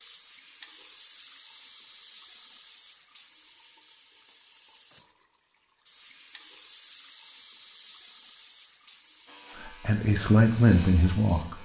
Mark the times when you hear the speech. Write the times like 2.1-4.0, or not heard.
9.7-11.6.